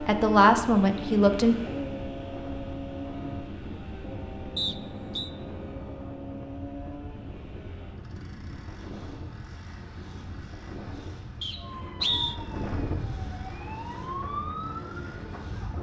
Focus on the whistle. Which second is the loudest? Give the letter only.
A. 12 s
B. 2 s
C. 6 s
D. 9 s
A.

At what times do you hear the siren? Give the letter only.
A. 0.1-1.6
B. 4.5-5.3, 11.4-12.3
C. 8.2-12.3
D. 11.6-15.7
D.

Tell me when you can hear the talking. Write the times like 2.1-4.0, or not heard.
0.1-1.6.